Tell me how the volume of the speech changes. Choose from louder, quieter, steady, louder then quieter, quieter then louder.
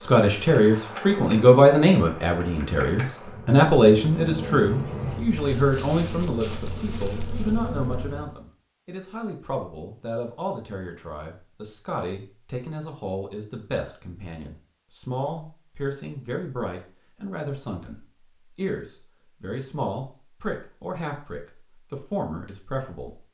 quieter.